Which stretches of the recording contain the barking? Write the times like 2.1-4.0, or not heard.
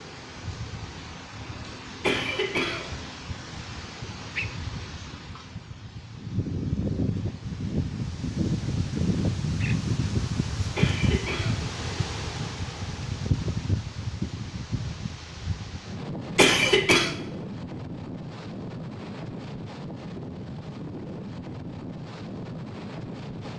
not heard.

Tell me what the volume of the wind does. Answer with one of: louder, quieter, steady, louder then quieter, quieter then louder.
louder then quieter.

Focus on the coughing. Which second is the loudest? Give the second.
17 s.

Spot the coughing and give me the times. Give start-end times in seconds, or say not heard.
2.0-2.9, 10.8-11.6, 16.4-17.1.